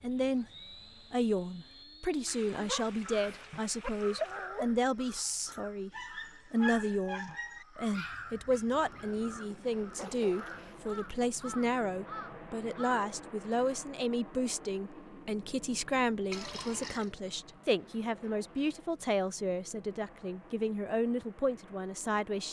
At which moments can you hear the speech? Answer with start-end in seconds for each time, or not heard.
0.0-0.5, 1.1-5.9, 6.5-22.4.